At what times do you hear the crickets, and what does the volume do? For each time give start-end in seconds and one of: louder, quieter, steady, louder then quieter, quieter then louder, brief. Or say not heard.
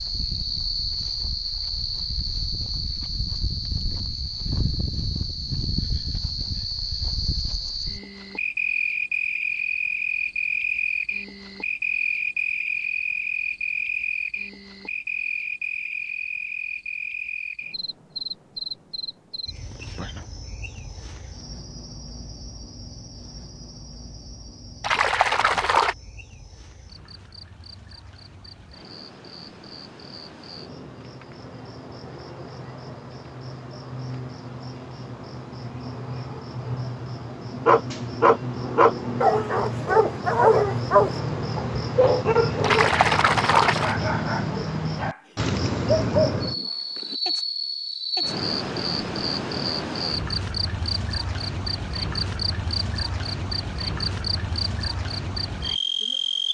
0.0-56.4 quieter then louder.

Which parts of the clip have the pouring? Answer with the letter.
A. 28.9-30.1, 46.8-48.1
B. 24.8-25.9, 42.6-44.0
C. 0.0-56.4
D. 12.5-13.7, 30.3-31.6
B.